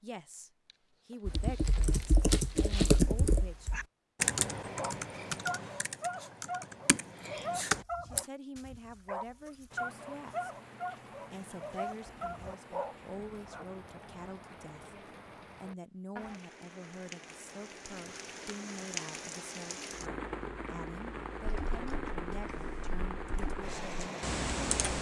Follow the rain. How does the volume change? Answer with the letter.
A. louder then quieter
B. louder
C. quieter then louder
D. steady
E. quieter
B.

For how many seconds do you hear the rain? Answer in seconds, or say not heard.
15 s.